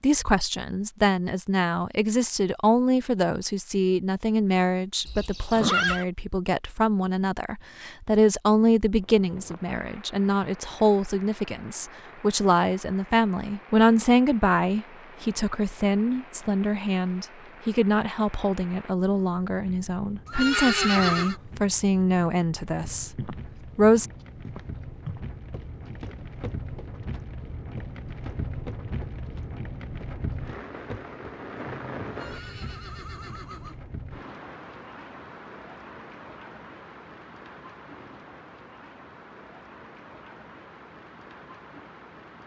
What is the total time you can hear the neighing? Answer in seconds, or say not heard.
4 s.